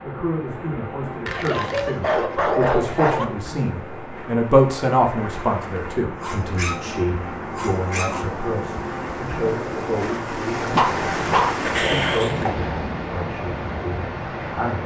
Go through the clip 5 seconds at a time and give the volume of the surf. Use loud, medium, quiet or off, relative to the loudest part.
medium, loud, loud.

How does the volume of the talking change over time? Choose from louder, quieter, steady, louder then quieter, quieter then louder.
louder then quieter.